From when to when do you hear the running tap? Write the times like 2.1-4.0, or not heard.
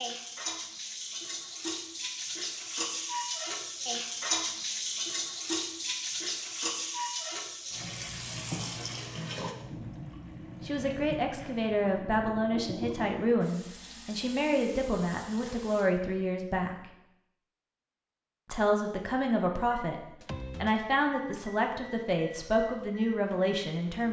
0.0-15.9.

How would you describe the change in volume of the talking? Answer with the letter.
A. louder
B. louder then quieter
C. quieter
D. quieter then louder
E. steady
E.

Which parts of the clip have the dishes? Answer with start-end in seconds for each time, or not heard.
not heard.